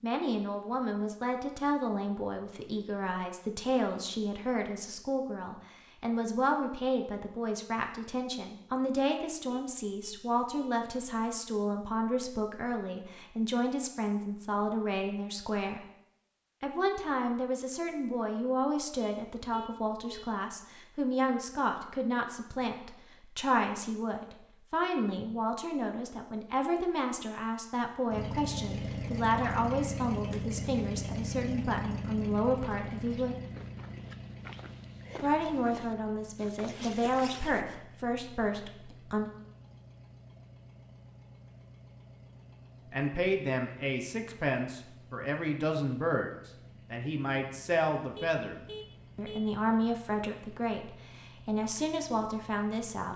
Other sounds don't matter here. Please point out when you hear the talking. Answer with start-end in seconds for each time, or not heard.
0.0-15.8, 16.6-33.4, 35.2-39.3, 42.9-53.1.